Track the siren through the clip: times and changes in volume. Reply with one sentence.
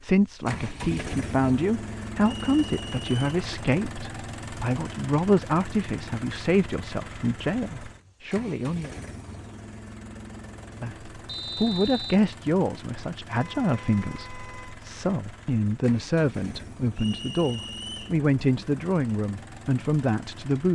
The siren can't be heard in this clip.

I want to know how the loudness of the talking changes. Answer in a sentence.
The loudness of the talking stays about the same.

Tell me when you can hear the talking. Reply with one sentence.
You can hear the talking from 0.0 to 8.9 s and from 10.8 to 20.7 s.